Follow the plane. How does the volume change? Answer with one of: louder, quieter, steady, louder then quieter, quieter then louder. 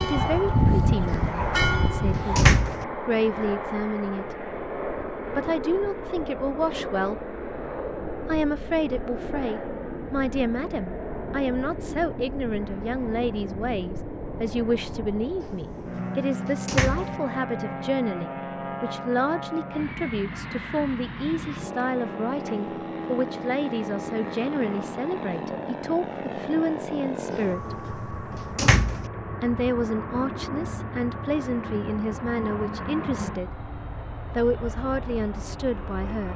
steady.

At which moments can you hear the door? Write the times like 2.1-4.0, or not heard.
1.1-2.9, 15.4-17.2, 27.3-29.1.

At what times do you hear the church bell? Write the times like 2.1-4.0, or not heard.
0.0-2.6.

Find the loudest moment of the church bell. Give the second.
1 s.